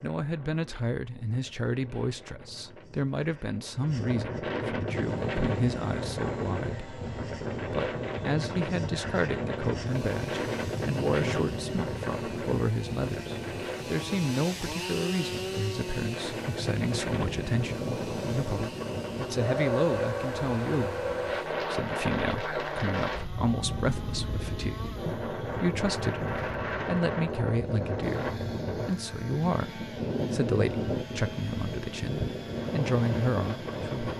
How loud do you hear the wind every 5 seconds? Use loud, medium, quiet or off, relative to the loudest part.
medium, loud, loud, loud, loud, loud, loud.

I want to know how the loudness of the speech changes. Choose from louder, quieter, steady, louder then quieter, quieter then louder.
steady.